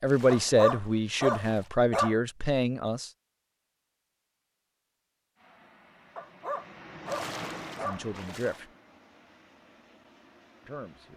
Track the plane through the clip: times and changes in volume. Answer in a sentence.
The plane can be heard from 5.3 to 11.1 s, getting louder then quieter.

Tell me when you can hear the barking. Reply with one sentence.
The barking can be heard from 0.3 to 2.1 s and from 6.2 to 8.1 s.